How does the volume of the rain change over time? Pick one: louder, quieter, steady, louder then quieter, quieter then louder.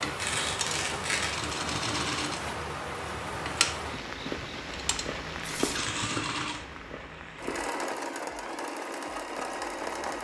quieter.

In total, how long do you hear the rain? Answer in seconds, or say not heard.
10 s.